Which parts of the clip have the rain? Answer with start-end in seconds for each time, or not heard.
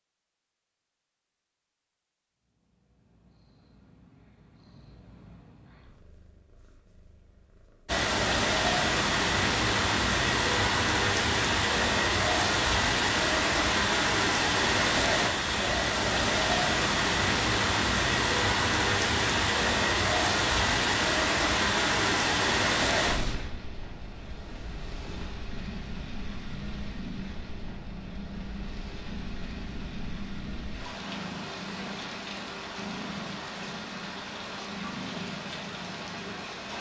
7.8-36.7.